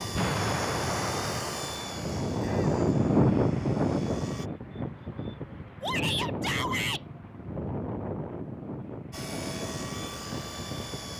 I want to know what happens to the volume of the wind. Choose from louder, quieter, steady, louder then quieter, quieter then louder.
louder then quieter.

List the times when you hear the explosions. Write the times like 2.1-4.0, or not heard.
0.1-2.2.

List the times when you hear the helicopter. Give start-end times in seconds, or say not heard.
0.0-4.5, 9.1-11.1.